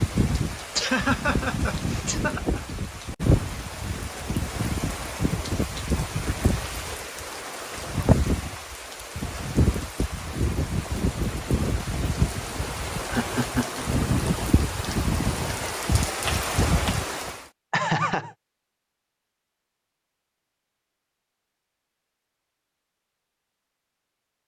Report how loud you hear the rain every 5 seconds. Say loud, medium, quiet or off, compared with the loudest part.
loud, loud, loud, loud, off.